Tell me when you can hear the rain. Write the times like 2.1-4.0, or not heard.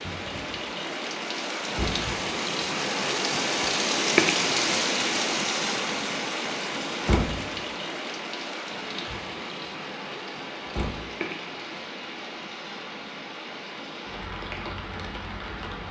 0.0-15.8.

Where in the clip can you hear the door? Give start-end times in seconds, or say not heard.
1.7-2.1, 7.0-7.5, 10.7-11.1.